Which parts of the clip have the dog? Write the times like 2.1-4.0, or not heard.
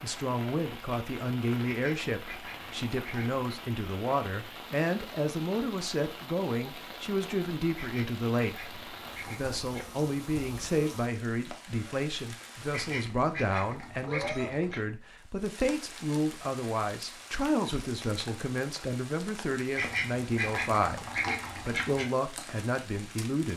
not heard.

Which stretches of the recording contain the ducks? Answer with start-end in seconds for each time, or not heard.
1.6-3.4, 7.8-9.9, 12.7-14.8, 19.8-22.1.